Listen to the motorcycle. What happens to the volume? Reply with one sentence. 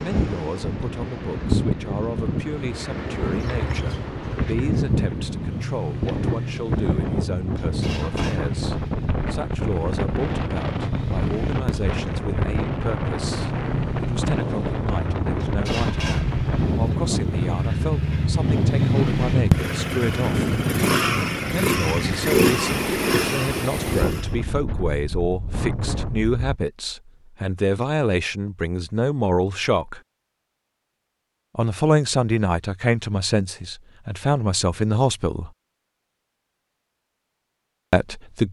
The loudness of the motorcycle goes up.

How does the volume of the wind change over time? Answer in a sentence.
The loudness of the wind stays about the same.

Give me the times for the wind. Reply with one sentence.
You can hear the wind from 0.0 to 26.4 s.